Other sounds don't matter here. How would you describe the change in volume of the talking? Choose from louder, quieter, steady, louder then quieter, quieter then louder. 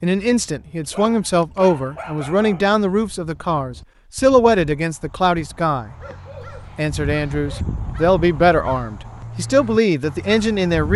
steady.